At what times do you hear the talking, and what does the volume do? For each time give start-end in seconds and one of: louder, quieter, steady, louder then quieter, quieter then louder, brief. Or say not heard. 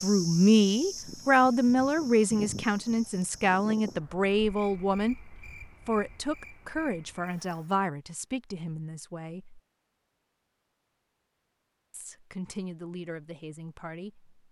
0.0-9.6 quieter
11.9-14.3 brief.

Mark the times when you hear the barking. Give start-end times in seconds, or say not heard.
not heard.